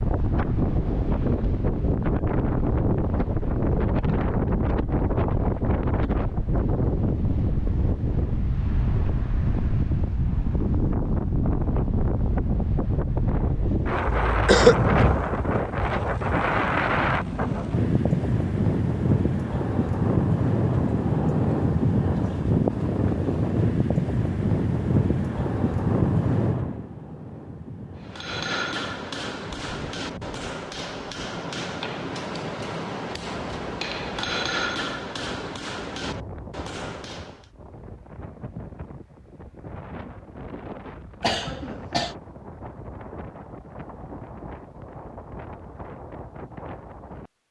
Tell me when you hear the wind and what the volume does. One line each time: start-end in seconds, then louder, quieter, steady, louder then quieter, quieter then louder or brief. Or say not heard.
0.0-47.3 quieter.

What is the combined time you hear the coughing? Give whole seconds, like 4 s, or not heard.
2 s.